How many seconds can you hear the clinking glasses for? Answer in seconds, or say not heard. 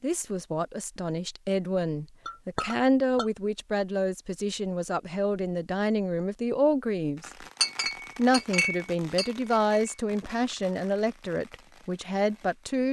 3 s.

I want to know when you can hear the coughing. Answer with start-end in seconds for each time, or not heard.
not heard.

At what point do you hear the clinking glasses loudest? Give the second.
8 s.